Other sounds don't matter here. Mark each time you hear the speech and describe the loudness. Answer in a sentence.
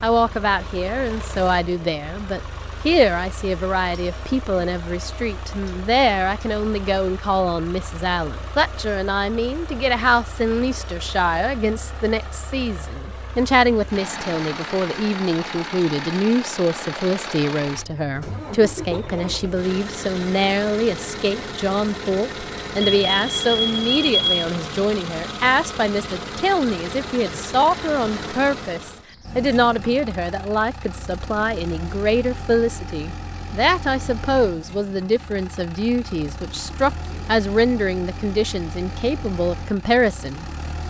You can hear the speech from 0.0 to 40.5 s, at a steady volume.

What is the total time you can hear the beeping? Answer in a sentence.
You can hear the beeping for 2 seconds altogether.